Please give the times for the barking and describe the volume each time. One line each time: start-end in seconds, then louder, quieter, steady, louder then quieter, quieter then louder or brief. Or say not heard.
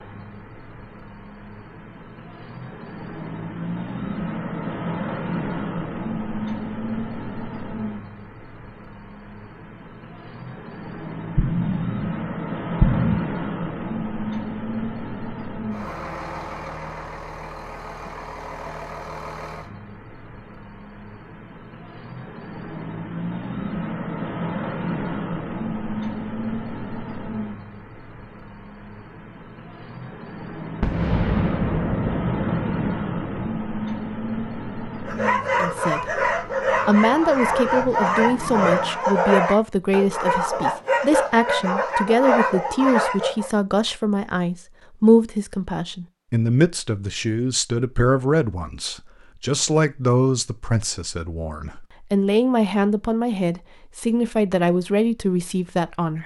35.0-43.5 steady.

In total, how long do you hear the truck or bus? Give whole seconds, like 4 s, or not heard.
39 s.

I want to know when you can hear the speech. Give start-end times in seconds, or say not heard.
35.6-56.2.